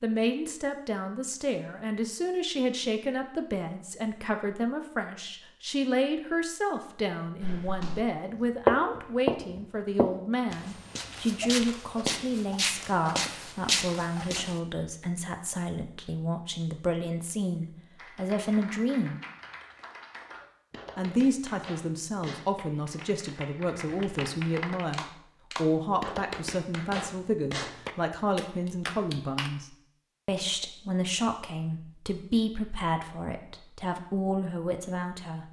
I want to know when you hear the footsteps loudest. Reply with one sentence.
The loudest moment of the footsteps is at 9 seconds.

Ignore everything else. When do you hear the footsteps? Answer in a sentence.
The footsteps can be heard from 7.4 to 8.1 s and from 8.7 to 14.6 s.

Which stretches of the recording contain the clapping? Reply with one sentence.
The clapping can be heard from 17.9 to 29.5 s.